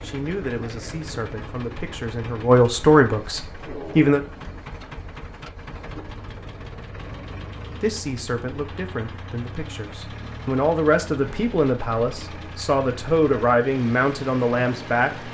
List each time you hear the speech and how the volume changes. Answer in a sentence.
You can hear the speech from 0.0 to 4.2 s, getting louder then quieter; and from 7.8 to 15.3 s, getting louder.